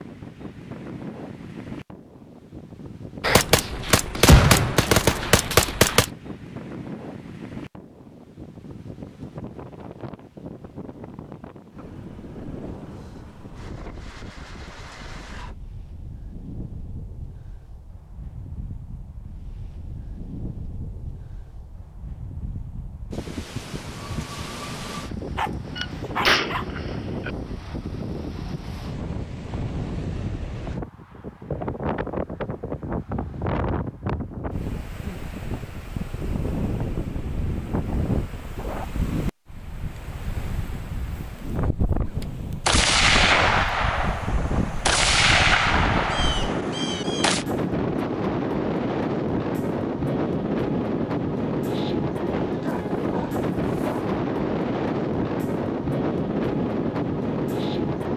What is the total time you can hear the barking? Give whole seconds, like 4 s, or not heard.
3 s.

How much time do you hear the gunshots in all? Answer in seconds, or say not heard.
9 s.